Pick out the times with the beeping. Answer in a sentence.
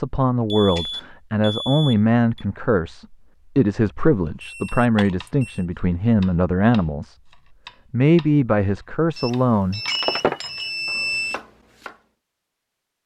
The beeping can be heard from 0.5 to 2.5 s, from 4.4 to 5.7 s and from 9.2 to 11.4 s.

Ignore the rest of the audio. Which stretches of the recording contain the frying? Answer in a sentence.
You can't hear the frying here.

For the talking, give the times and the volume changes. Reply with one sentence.
The talking can be heard from 0.0 to 7.2 s, at a steady volume; and briefly from 7.9 to 9.8 s.